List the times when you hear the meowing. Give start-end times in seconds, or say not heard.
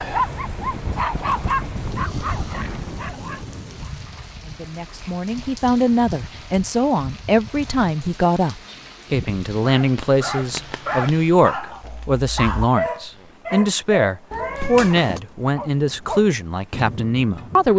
14.3-15.2.